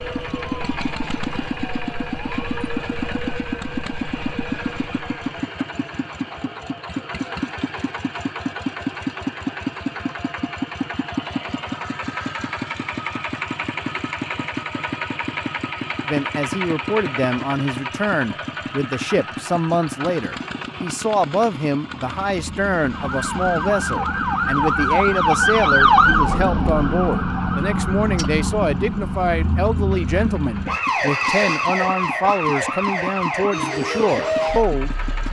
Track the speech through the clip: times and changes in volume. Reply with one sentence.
You can hear the speech from 16.1 to 35.2 s, at a steady volume.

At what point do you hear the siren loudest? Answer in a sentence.
The volume of the siren peaks at 26 seconds.